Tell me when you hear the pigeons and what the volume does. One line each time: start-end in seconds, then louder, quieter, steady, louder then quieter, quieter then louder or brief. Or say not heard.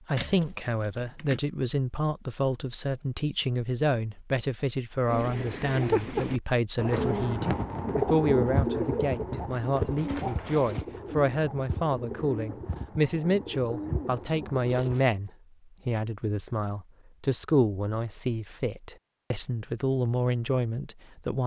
5.0-15.0 quieter.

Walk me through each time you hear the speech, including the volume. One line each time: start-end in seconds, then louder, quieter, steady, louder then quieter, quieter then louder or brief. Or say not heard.
0.1-21.4 steady.